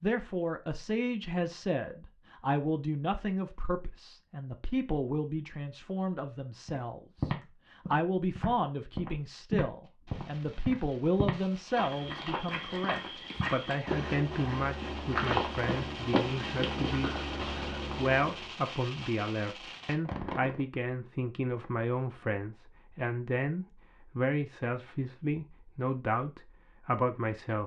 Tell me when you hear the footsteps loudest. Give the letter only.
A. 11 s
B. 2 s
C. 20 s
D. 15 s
D.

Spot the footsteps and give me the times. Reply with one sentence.
You can hear the footsteps from 6.7 to 18.4 s.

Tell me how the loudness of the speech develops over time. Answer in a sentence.
The loudness of the speech stays about the same.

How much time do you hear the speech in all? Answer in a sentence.
You can hear the speech for 27 seconds altogether.